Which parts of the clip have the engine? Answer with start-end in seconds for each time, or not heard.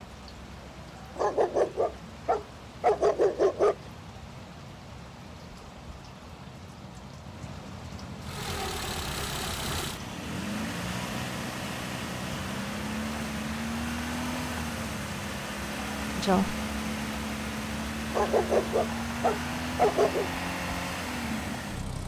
8.2-22.0.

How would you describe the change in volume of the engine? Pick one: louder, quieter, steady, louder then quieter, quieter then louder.
steady.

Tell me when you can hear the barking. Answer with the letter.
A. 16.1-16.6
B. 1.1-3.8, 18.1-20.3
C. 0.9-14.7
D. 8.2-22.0
B.